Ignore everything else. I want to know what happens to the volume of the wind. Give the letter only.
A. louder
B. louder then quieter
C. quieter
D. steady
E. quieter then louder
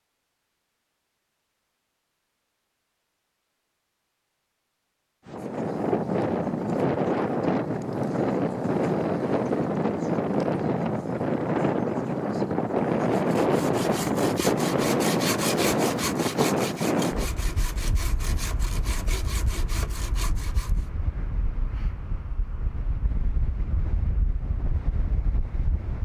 C.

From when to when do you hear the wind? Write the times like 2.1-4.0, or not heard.
5.2-26.0.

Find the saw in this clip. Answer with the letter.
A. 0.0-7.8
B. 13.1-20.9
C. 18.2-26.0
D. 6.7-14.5
B.